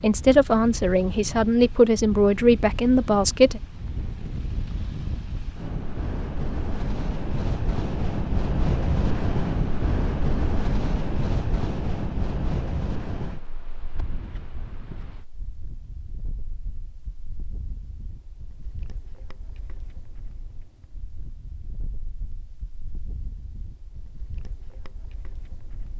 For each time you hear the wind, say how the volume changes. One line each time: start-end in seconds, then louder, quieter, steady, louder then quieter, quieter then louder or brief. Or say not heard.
0.0-25.9 louder then quieter.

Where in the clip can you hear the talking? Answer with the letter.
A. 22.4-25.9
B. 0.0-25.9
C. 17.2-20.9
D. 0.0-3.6
D.